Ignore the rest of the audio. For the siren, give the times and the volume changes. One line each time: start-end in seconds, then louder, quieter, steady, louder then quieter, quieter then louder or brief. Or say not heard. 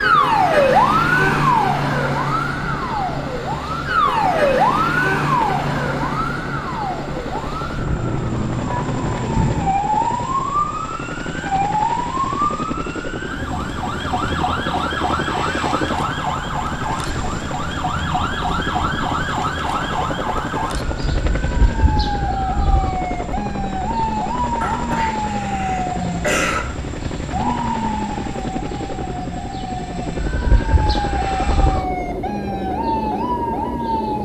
0.0-34.1 quieter.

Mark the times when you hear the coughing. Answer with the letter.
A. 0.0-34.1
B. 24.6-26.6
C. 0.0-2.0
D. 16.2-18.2
B.